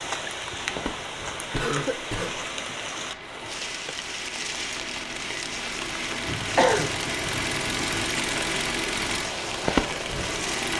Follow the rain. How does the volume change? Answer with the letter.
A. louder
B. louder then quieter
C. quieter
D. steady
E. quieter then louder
D.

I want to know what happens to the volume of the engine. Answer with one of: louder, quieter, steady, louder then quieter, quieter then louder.
louder.